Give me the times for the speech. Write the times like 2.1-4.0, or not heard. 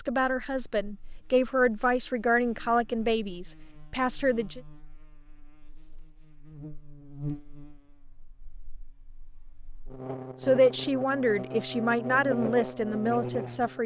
0.0-4.6, 10.4-13.8.